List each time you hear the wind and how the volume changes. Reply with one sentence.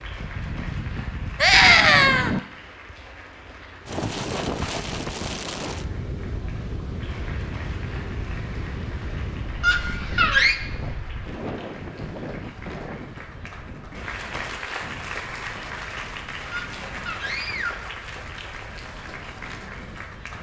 The wind can be heard from 0.0 to 20.3 s, getting quieter.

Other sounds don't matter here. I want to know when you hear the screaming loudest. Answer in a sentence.
The loudest moment of the screaming is at 2 seconds.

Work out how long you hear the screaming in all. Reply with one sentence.
You can hear the screaming for 3 seconds altogether.